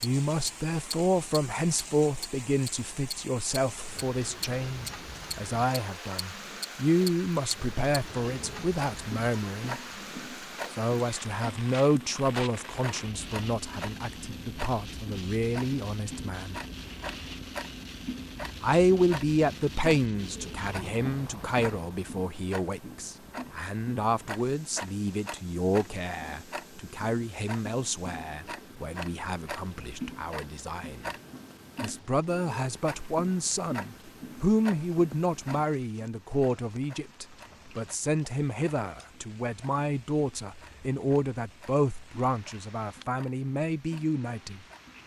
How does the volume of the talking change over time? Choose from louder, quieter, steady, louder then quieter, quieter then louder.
steady.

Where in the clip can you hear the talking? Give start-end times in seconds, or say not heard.
0.0-9.8, 10.7-16.6, 18.6-31.1, 31.8-44.6.